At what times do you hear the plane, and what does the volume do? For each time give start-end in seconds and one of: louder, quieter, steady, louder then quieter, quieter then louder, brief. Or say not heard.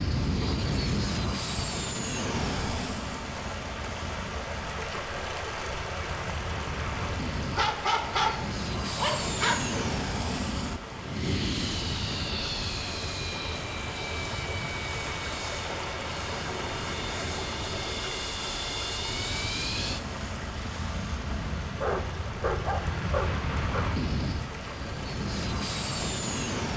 0.0-26.7 steady.